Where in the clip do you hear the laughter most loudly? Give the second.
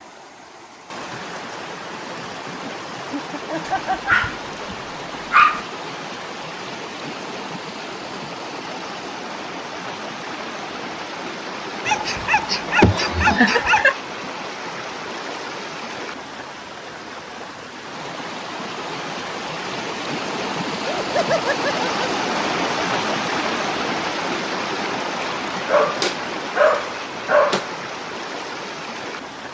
13 s.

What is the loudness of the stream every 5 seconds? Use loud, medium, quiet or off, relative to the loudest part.
medium, medium, medium, medium, loud, medium.